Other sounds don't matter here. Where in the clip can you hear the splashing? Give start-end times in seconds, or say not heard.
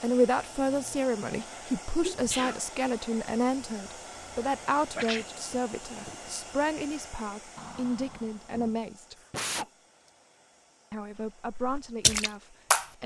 11.1-12.8.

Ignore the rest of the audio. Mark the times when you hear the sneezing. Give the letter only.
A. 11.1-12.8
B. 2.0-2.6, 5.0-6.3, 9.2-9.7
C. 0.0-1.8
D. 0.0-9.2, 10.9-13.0
B.